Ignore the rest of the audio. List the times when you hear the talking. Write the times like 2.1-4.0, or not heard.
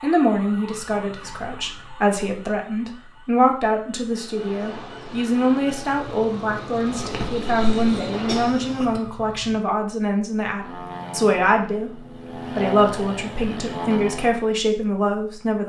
0.0-15.6.